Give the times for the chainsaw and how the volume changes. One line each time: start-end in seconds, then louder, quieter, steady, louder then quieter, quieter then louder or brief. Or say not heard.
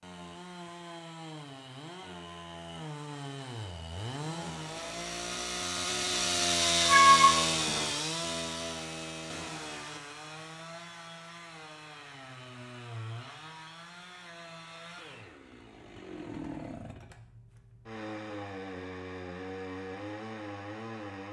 0.0-21.2 louder then quieter.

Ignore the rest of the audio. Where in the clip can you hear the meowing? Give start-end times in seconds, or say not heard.
6.8-7.8.